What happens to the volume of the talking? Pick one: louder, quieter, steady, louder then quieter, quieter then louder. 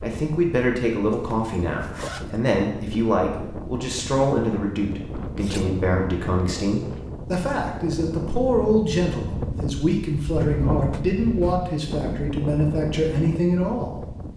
steady.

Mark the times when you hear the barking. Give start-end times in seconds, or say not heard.
not heard.